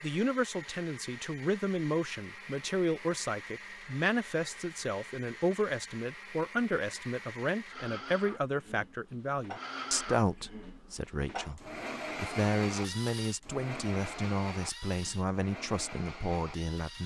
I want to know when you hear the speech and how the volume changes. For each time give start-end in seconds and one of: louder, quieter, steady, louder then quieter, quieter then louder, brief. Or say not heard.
0.0-17.0 steady.